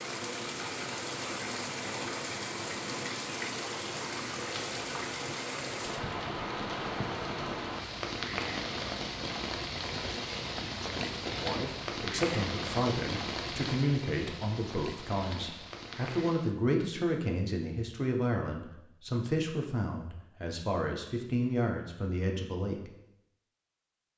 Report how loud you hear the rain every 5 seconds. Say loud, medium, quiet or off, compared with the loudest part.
loud, loud, loud, medium, off.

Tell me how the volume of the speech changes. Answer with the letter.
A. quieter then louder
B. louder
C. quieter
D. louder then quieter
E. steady
E.